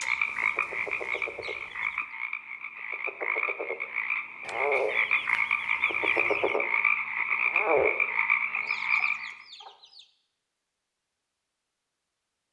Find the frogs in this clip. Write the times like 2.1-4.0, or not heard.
0.0-9.4.